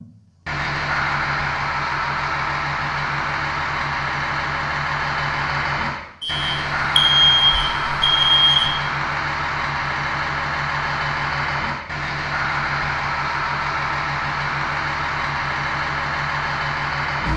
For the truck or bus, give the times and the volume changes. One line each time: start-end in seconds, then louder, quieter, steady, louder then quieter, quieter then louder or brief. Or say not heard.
0.0-17.3 steady.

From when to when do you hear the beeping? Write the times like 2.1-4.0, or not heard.
6.2-8.7.